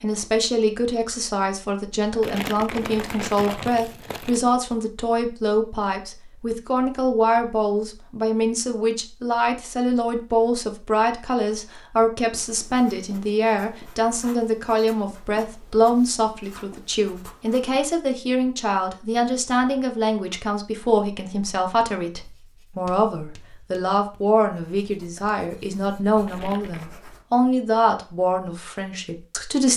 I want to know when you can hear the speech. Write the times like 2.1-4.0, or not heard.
0.0-29.7.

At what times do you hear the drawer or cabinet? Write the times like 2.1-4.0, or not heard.
not heard.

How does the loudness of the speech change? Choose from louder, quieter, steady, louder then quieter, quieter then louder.
steady.